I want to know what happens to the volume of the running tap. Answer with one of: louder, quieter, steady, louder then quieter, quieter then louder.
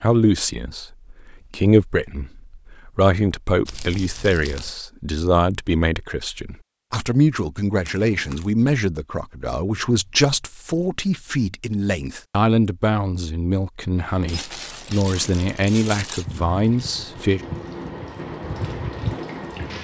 louder.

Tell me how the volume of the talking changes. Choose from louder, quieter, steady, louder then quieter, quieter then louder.
steady.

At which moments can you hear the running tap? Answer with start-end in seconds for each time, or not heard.
13.9-19.7.